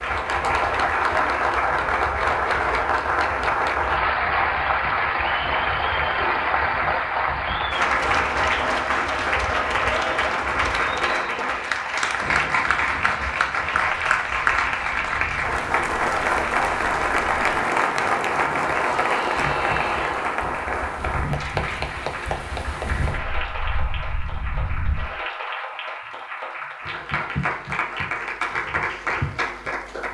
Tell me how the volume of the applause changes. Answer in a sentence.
The volume of the applause goes down.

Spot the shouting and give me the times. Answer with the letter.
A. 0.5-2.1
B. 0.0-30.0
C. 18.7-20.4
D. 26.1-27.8
C.